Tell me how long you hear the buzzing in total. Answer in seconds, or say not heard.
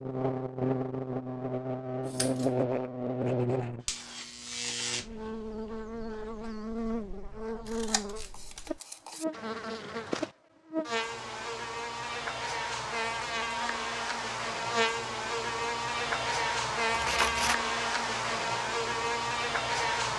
20 s.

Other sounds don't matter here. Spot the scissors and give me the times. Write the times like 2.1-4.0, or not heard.
2.0-2.5, 7.7-9.2, 16.9-17.6.